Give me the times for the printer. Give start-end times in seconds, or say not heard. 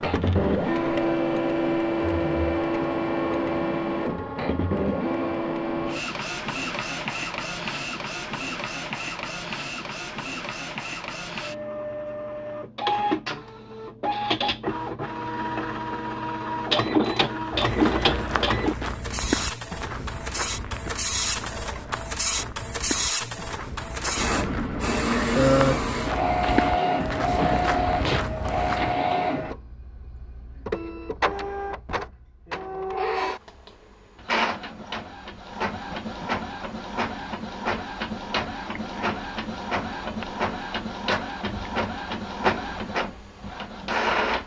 0.0-44.4.